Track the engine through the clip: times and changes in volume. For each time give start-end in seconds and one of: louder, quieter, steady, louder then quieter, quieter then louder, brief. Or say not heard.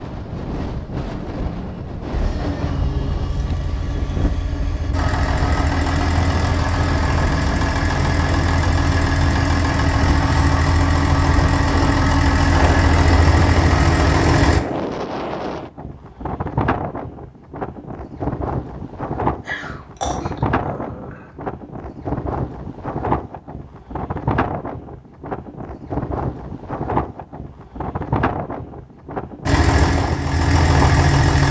2.1-14.6 louder
29.4-31.4 brief.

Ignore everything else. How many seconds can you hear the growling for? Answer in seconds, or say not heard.
2 s.